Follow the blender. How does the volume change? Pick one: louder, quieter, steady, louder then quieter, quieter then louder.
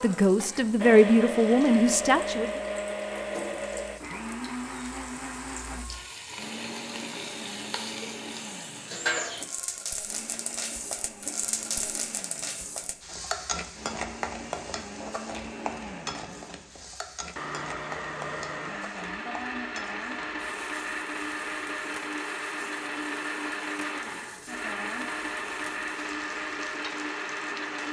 quieter then louder.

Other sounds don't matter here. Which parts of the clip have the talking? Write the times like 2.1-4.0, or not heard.
0.0-2.6.